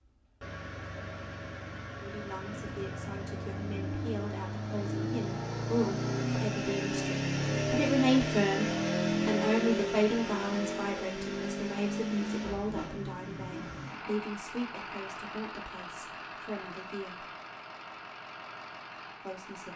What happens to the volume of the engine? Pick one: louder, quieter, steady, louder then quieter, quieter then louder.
louder then quieter.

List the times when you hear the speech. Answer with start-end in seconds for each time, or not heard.
2.0-17.2, 19.2-19.7.